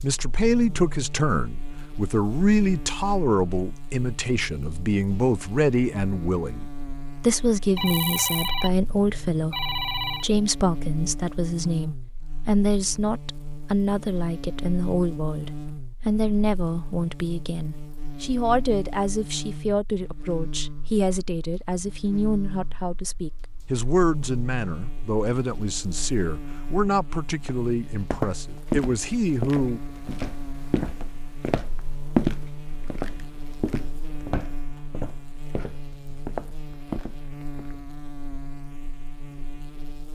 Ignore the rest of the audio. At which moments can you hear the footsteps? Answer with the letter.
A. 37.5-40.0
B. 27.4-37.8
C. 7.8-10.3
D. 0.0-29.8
B.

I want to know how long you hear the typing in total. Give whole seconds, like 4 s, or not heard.
not heard.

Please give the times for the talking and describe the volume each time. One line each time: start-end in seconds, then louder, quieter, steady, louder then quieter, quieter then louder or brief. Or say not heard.
0.0-29.8 steady.